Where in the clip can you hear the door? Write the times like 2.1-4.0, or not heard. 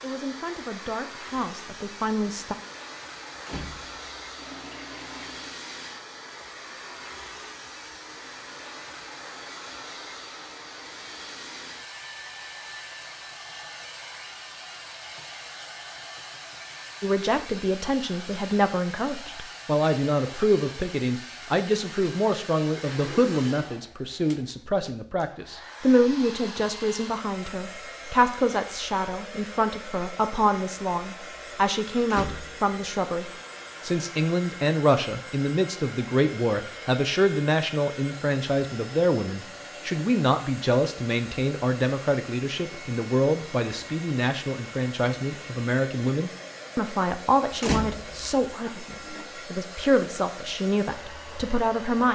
3.4-4.1, 32.0-32.8, 47.5-48.4.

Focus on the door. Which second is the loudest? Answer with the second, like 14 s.
48 s.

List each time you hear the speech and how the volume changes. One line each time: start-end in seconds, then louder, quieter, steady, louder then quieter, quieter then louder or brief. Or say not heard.
0.0-2.5 brief
17.0-52.0 steady.